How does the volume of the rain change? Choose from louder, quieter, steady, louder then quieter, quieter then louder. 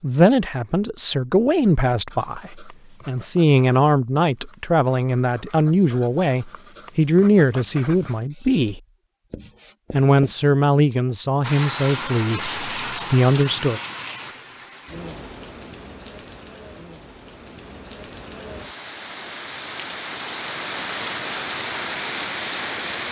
quieter then louder.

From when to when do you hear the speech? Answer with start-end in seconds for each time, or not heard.
0.0-8.8, 9.9-13.8.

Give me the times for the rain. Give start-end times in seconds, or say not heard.
11.4-23.0.